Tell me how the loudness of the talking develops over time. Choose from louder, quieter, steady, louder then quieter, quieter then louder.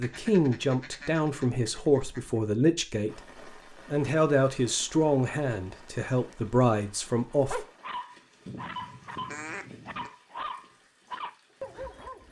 steady.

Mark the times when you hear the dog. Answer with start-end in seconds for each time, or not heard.
7.3-12.2.